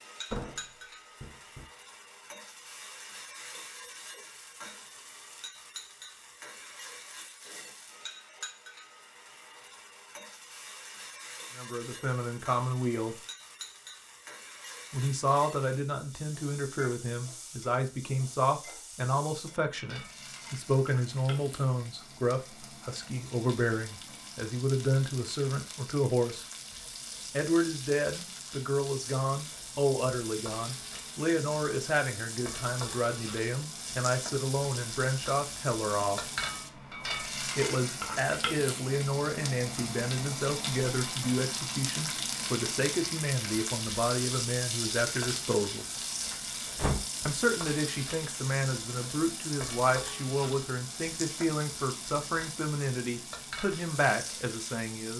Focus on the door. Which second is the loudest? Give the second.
47 s.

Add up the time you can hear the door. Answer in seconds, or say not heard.
2 s.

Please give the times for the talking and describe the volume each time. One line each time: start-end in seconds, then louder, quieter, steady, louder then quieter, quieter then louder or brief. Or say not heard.
11.6-13.2 brief
14.9-26.4 steady
27.3-36.3 steady
37.5-45.9 steady
47.2-55.1 steady.